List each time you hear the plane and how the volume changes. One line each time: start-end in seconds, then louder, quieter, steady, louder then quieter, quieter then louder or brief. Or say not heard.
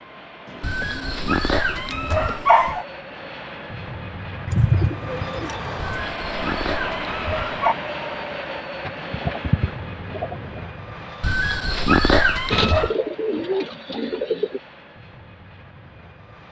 0.0-16.4 louder then quieter.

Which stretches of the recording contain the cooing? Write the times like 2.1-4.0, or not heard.
0.5-2.5, 4.5-5.8, 8.8-10.7, 12.5-14.6.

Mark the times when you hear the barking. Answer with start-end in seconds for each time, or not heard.
0.6-2.9, 5.8-7.8, 11.2-12.9.